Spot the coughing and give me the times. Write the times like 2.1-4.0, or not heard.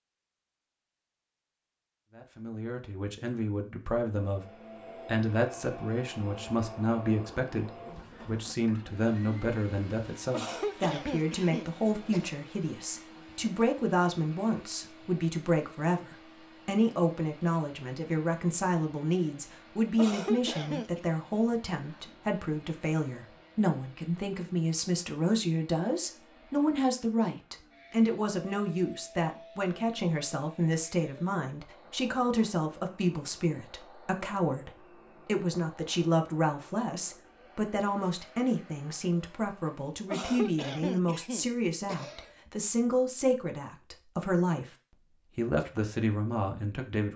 10.3-12.3, 19.9-21.0, 40.1-42.3.